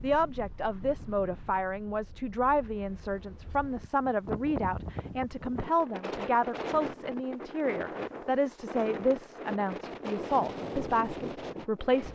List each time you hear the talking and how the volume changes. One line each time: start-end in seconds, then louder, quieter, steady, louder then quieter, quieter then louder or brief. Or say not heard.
0.0-12.0 steady.